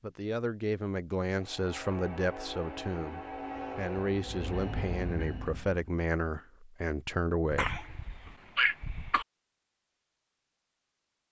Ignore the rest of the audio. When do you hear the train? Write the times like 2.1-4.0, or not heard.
1.4-5.8.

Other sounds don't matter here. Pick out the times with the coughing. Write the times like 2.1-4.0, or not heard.
7.5-9.2.